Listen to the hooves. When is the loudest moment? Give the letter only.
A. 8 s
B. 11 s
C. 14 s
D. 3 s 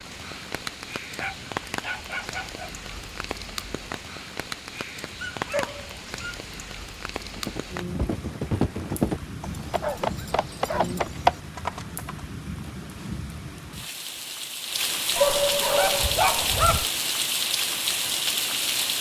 B.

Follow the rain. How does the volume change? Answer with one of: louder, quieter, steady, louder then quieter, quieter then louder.
louder.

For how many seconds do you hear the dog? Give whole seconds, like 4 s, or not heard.
6 s.